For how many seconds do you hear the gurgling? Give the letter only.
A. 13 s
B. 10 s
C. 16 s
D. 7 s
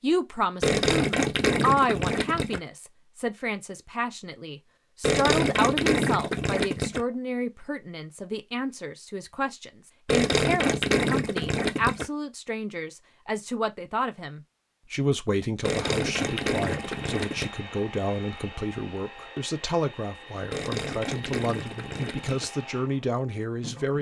B.